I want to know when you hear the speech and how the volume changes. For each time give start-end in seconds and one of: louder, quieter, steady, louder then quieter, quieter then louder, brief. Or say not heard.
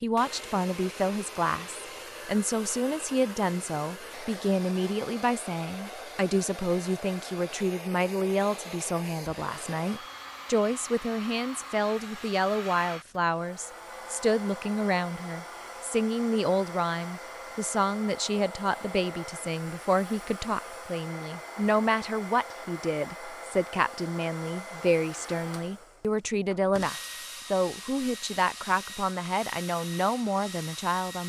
0.0-31.2 steady.